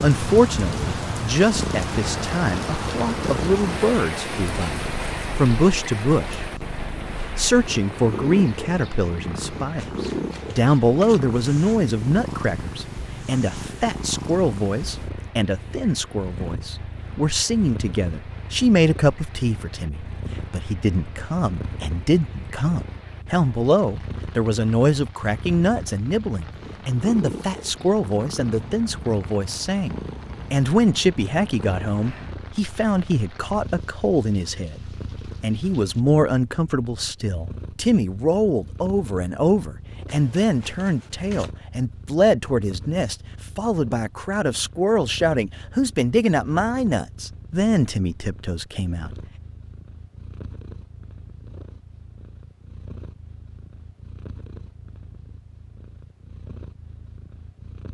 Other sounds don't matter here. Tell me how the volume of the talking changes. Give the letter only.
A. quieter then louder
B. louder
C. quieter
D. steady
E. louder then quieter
D.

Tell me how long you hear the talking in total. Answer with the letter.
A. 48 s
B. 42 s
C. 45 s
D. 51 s
A.